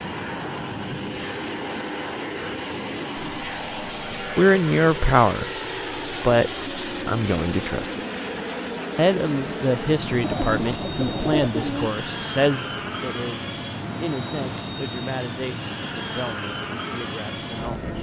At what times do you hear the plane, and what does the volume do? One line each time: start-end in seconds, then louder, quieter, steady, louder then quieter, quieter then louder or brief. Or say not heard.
0.0-17.9 steady.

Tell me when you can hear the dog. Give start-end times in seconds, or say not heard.
not heard.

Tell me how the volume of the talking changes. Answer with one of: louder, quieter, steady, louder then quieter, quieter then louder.
quieter.